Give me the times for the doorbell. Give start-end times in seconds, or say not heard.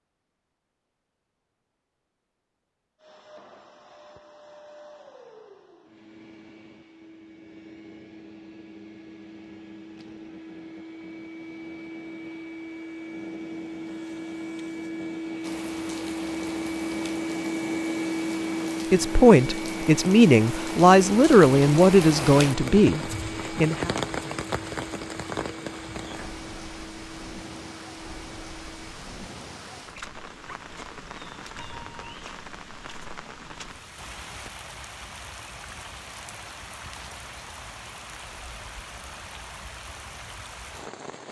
31.6-32.2.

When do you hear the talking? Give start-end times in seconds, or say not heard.
18.9-23.9.